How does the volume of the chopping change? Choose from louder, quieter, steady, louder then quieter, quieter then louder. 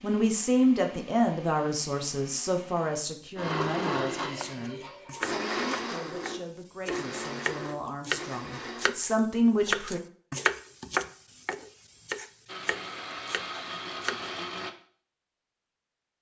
louder then quieter.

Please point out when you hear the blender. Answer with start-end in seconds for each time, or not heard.
0.0-8.9, 12.4-14.7.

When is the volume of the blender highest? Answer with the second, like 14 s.
4 s.